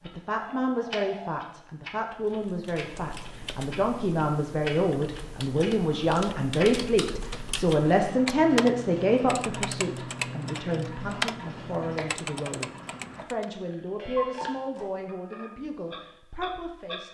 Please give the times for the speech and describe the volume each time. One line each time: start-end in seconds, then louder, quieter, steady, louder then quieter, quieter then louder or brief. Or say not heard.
0.0-17.1 louder then quieter.